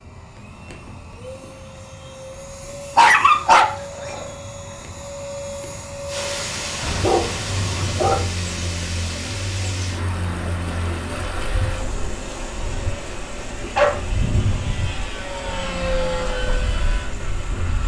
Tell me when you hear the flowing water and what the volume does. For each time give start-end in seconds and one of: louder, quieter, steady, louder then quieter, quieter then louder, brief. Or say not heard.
6.0-17.8 quieter.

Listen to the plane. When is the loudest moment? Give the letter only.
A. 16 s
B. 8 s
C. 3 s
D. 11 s
A.